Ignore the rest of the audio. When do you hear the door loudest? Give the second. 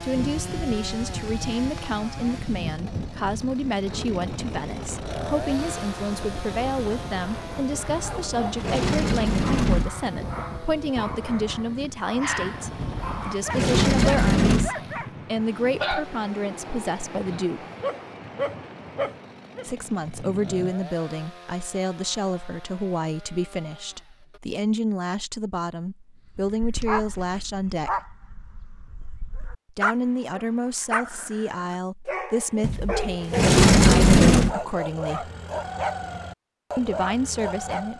34 s.